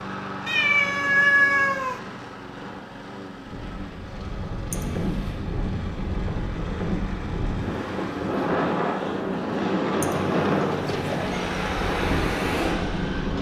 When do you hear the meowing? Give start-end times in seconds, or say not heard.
0.5-2.0, 4.7-5.4, 10.0-11.4.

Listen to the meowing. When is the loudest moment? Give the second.
1 s.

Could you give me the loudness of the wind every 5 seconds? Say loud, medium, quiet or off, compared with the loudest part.
medium, loud, loud.